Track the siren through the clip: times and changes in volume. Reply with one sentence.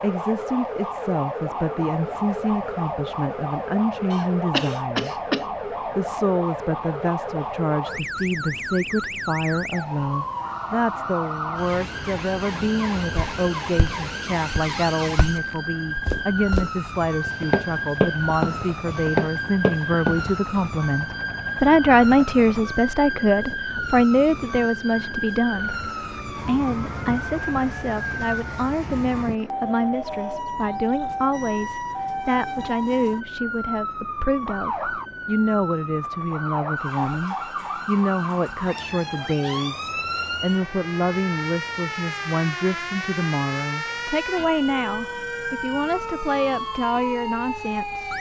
You can hear the siren from 0.0 to 48.1 s, at a steady volume.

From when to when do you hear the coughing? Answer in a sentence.
You can hear the coughing from 4.1 to 5.5 s.